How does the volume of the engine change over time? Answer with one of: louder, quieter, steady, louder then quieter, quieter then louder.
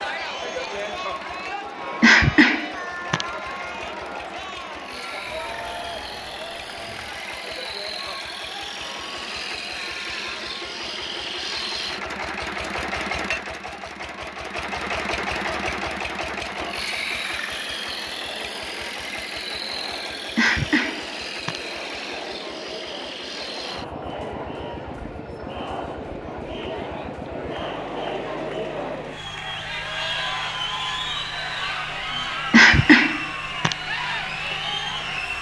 louder then quieter.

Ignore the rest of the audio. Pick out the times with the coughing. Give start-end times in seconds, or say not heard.
2.0-3.2, 20.4-21.6, 32.5-33.8.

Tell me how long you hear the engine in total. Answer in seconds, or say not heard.
35 s.